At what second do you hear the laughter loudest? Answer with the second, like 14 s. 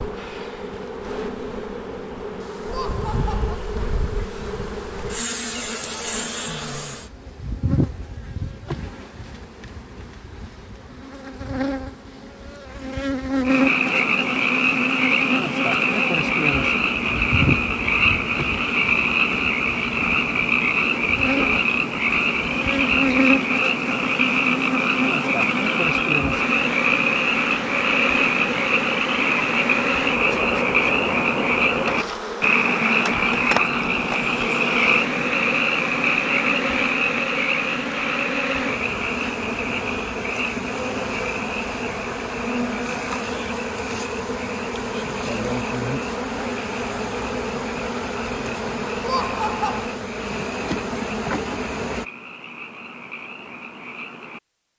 49 s.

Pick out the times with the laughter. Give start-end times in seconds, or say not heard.
2.6-3.6, 49.0-49.9.